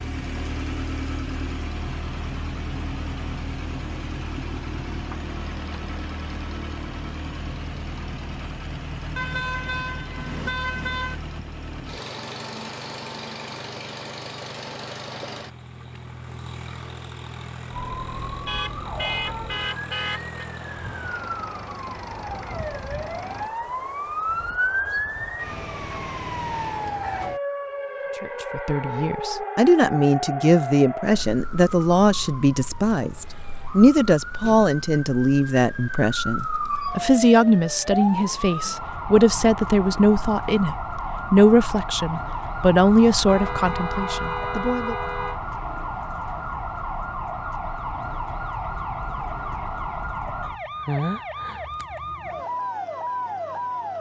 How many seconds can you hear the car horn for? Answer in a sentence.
The car horn can be heard for 6 seconds in total.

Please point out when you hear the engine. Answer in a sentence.
You can hear the engine from 0.0 to 23.5 s.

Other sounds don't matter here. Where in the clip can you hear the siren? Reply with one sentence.
The siren can be heard from 17.7 to 53.9 s.